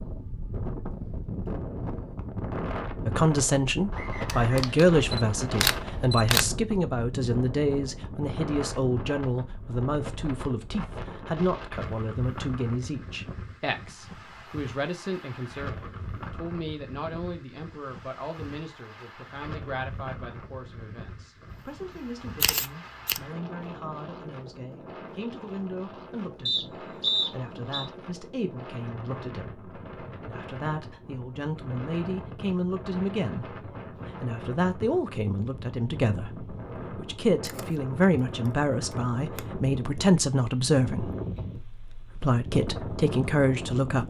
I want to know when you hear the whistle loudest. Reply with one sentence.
The volume of the whistle peaks at 27 seconds.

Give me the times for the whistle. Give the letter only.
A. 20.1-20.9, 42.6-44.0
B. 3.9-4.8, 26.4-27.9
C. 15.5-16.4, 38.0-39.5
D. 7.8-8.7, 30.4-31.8
B.